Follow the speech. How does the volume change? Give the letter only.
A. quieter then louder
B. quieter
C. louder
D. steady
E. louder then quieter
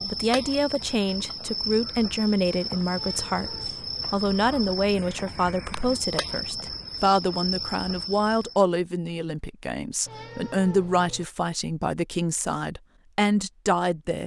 D.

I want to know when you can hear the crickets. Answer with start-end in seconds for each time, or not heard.
0.0-8.6.